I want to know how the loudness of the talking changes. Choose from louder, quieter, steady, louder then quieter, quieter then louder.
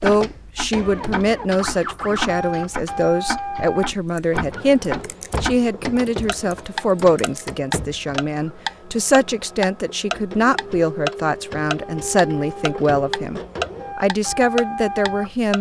steady.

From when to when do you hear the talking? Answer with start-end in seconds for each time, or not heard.
0.0-15.5.